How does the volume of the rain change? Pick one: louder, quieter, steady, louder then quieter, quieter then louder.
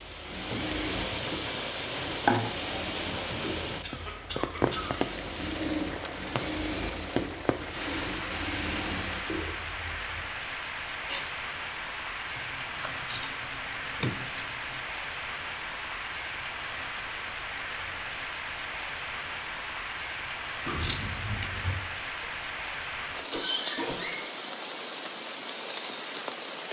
steady.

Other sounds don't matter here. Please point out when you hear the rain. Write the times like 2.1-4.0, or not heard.
0.0-26.6.